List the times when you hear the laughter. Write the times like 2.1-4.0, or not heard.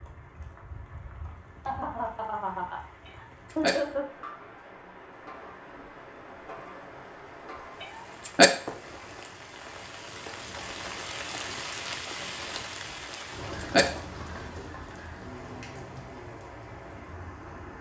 1.6-4.2.